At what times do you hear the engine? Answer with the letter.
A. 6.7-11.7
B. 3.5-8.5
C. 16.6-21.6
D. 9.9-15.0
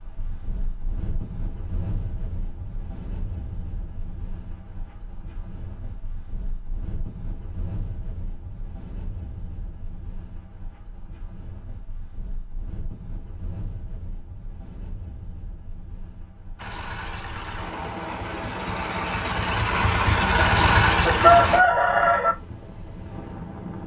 C.